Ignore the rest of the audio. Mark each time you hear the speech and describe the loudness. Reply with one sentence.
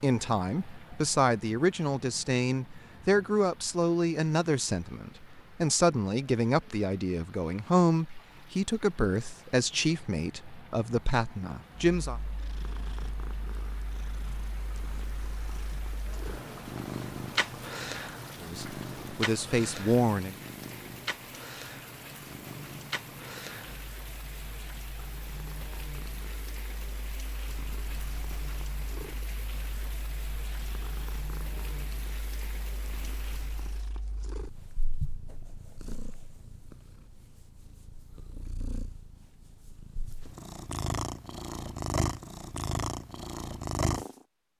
You can hear the speech from 0.0 to 12.2 s, at a steady volume; and briefly from 18.4 to 20.4 s.